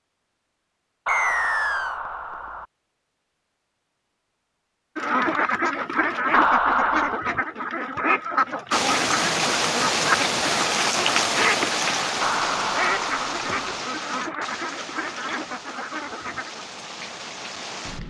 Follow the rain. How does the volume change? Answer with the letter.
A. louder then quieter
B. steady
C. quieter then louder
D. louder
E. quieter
E.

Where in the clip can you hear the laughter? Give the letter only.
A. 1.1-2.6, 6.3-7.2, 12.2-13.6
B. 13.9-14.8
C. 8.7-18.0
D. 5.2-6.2
A.